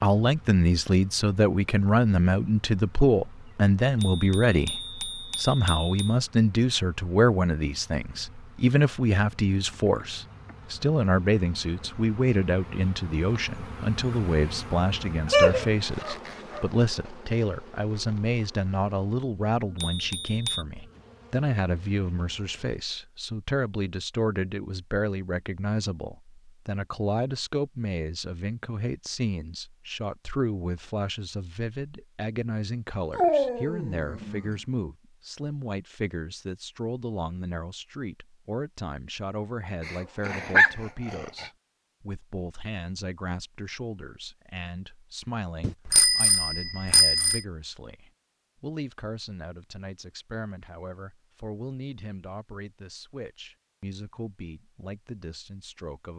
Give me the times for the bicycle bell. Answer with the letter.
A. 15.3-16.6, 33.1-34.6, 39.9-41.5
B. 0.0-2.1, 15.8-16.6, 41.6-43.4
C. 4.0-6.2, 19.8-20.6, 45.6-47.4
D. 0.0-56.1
C.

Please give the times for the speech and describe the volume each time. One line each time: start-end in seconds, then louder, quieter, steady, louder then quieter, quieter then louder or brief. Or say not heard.
0.0-56.1 quieter.